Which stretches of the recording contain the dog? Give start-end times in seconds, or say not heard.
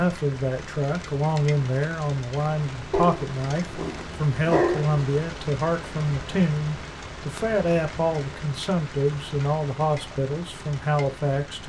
2.9-5.0.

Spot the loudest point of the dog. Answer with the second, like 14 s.
5 s.